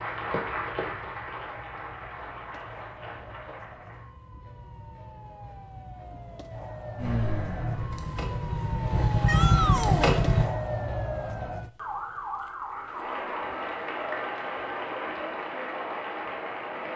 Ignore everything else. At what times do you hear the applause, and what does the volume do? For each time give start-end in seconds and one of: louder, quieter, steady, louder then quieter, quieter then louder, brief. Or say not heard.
0.0-4.0 quieter
12.6-16.9 steady.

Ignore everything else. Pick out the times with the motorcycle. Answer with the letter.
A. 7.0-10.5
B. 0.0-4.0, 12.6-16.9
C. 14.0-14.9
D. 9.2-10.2
A.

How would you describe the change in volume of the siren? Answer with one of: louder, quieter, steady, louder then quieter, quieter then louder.
louder then quieter.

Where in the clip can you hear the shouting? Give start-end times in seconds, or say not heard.
9.2-10.2.